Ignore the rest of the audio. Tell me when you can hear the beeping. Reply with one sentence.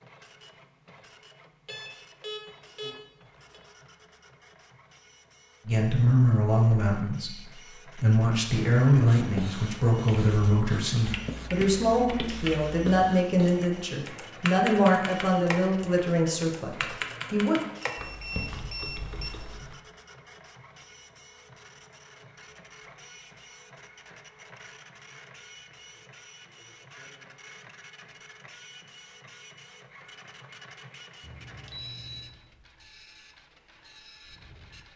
The beeping can be heard from 1.6 to 3.6 s, from 17.8 to 19.3 s and from 31.2 to 32.4 s.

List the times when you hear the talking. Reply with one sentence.
You can hear the talking from 5.7 to 17.6 s.